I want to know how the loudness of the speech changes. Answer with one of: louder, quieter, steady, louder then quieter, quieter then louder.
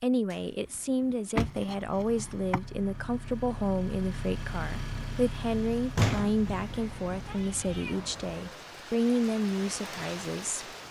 steady.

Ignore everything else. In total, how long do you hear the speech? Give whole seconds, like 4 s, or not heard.
11 s.